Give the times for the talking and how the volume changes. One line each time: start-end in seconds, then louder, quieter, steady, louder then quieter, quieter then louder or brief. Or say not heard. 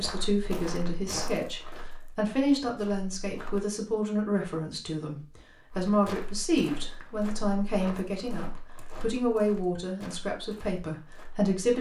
0.0-11.7 steady.